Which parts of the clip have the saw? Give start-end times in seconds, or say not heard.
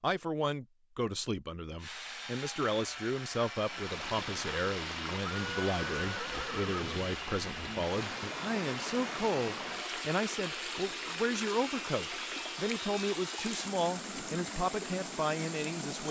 1.8-13.8.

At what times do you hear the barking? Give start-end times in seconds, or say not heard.
not heard.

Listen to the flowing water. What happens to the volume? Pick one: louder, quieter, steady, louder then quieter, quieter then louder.
steady.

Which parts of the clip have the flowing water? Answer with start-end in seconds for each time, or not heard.
3.5-16.0.